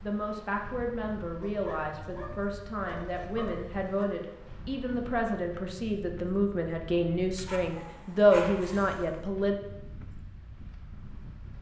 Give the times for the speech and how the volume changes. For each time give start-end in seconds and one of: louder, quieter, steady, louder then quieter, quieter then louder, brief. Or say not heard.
0.0-9.6 louder.